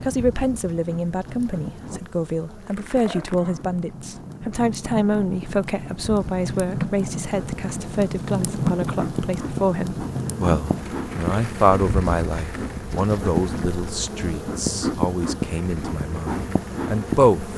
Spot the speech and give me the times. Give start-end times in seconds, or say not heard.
0.0-17.5.